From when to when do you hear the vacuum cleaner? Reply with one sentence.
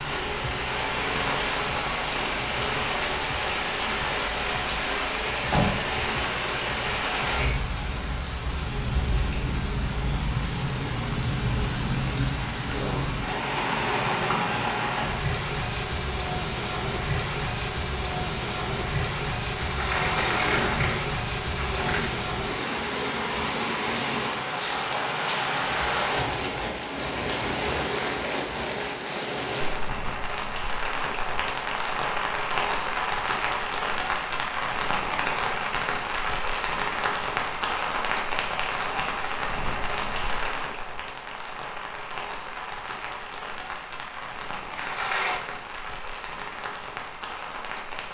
You can't hear the vacuum cleaner here.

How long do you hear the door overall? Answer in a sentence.
The door can be heard for 4 seconds in total.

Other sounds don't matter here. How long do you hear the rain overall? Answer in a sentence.
The rain can be heard for 48 seconds in total.